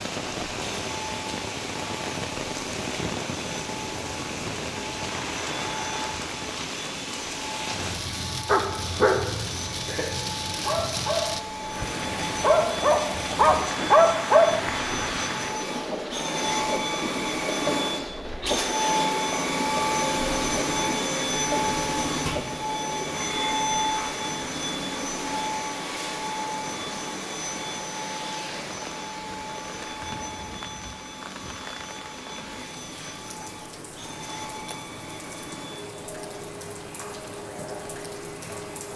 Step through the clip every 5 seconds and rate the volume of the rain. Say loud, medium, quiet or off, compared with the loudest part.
loud, loud, loud, loud, loud, medium, medium, medium.